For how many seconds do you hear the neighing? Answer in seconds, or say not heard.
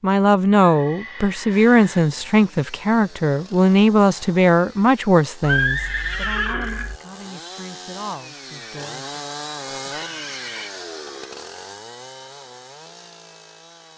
4 s.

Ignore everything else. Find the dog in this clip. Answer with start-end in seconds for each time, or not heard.
not heard.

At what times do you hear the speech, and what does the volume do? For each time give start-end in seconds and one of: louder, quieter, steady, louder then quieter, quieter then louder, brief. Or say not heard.
0.0-9.2 quieter.